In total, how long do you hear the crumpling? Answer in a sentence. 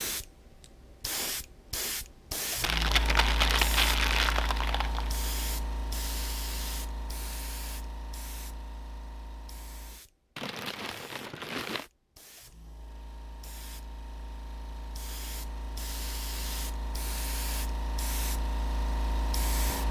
The crumpling can be heard for 4 seconds in total.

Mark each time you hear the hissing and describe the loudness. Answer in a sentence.
The hissing can be heard from 0.0 to 19.8 s, getting quieter then louder.